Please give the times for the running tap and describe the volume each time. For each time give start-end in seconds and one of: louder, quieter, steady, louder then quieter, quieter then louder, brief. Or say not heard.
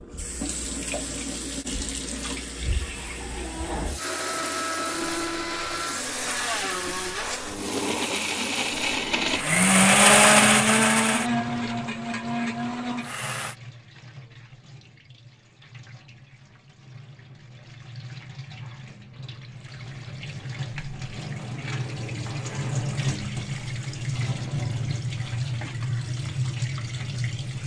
0.0-27.6 quieter then louder.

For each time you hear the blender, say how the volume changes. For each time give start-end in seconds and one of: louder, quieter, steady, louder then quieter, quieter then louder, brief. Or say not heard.
4.0-13.6 louder then quieter.